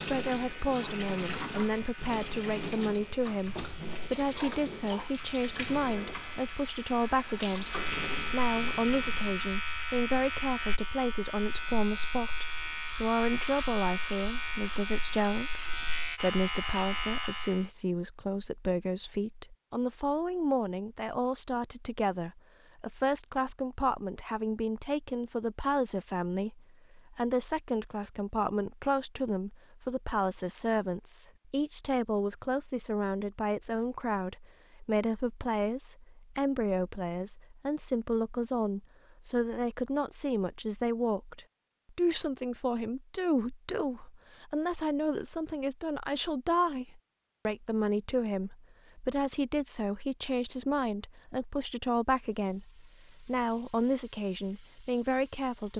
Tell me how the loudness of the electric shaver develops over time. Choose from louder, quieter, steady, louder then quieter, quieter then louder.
louder.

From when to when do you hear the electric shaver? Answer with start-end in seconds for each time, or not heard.
0.2-17.7.